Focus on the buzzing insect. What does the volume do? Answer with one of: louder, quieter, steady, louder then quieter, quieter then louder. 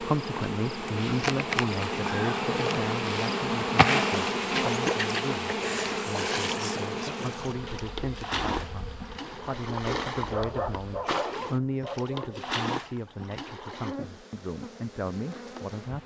quieter then louder.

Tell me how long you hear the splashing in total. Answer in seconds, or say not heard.
10 s.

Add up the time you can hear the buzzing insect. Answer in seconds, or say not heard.
16 s.